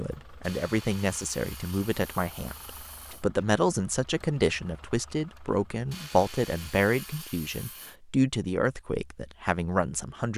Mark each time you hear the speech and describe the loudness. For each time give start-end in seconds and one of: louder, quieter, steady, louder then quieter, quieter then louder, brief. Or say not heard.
0.0-10.3 steady.